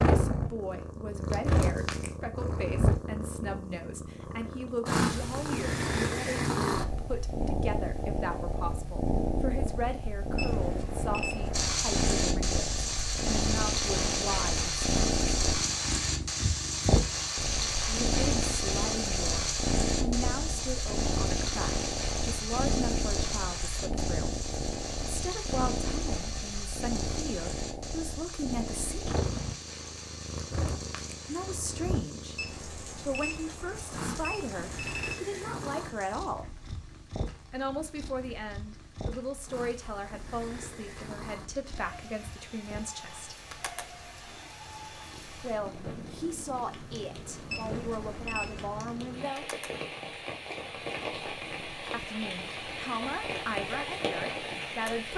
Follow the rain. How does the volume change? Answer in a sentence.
The volume of the rain goes down, then up.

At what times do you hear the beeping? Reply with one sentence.
The beeping can be heard from 10.3 to 11.7 s, from 32.4 to 35.1 s and from 47.5 to 48.8 s.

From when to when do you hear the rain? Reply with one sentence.
You can hear the rain from 11.5 to 55.1 s.